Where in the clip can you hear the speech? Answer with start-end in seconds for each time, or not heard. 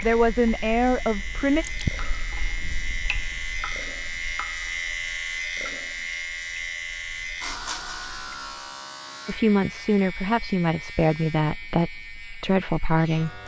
0.0-1.6, 9.2-13.4.